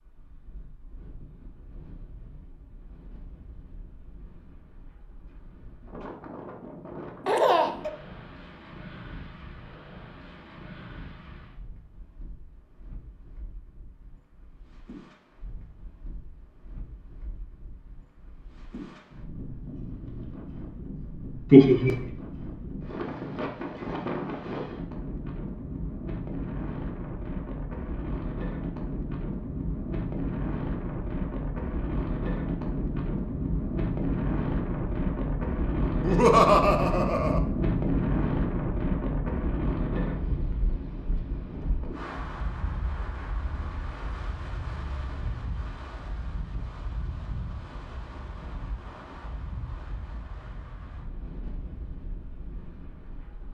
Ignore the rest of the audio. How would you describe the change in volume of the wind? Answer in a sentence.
The volume of the wind goes up, then down.